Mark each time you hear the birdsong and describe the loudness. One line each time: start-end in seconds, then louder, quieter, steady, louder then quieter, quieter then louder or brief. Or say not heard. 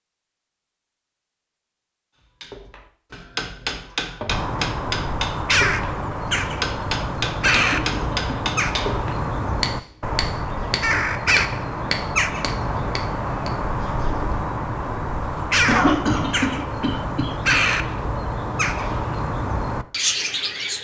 4.2-20.7 steady.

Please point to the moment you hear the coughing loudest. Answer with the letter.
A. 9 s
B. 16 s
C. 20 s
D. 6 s
B.